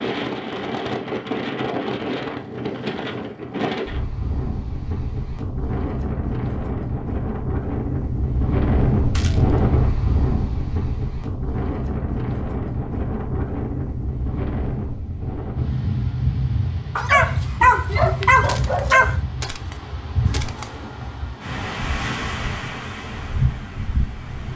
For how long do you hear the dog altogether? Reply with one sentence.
You can hear the dog for 2 seconds altogether.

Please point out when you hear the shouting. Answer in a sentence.
You can't hear the shouting here.